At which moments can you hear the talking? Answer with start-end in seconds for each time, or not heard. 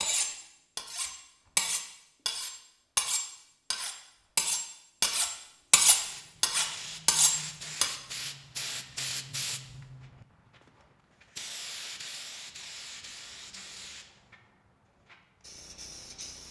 not heard.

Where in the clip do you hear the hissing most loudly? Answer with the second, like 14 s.
9 s.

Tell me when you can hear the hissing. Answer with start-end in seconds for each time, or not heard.
5.8-16.4.